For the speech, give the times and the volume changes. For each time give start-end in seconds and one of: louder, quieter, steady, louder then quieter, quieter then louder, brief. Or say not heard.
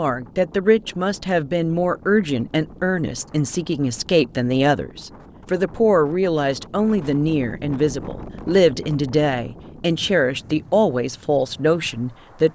0.0-12.5 steady.